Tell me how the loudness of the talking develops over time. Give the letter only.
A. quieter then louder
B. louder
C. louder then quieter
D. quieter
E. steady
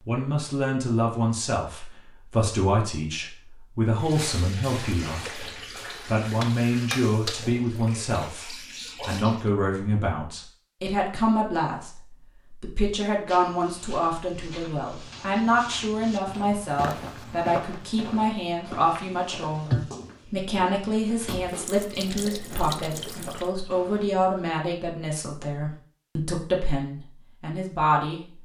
E.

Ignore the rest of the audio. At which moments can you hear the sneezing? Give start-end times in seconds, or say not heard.
not heard.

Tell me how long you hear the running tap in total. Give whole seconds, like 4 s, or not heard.
10 s.